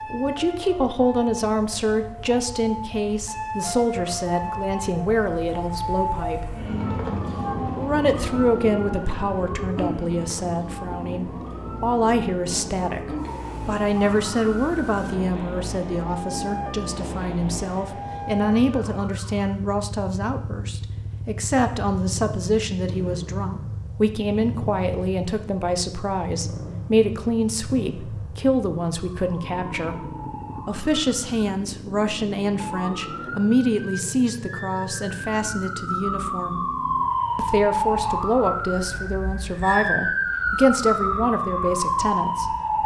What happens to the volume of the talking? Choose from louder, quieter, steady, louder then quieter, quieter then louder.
steady.